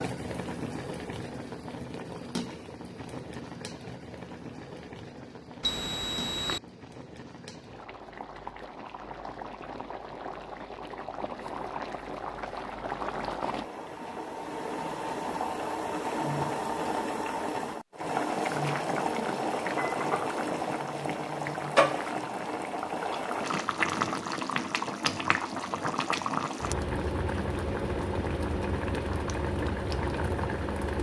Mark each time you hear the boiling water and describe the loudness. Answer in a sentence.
The boiling water can be heard from 0.0 to 30.9 s, getting louder.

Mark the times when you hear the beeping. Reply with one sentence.
You can hear the beeping from 5.6 to 6.6 s.